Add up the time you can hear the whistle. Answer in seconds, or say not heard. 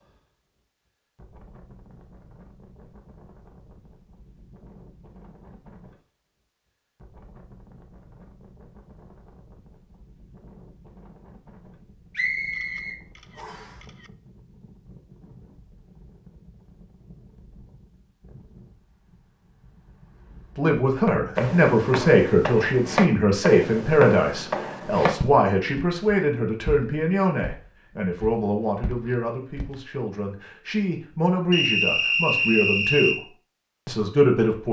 3 s.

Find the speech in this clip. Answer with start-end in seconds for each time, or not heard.
20.6-33.2, 33.9-34.6.